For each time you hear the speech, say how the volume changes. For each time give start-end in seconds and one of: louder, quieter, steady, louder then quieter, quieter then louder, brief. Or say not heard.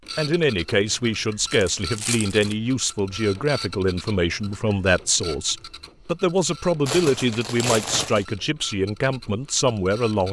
0.1-10.2 steady.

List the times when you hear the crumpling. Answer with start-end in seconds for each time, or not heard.
1.5-2.5, 6.8-8.2.